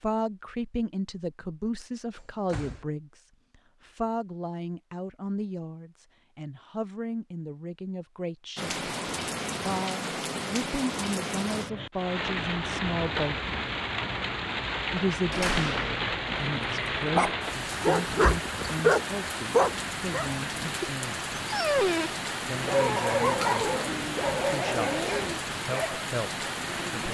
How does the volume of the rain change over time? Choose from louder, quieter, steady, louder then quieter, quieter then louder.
steady.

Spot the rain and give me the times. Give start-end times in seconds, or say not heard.
8.6-27.0.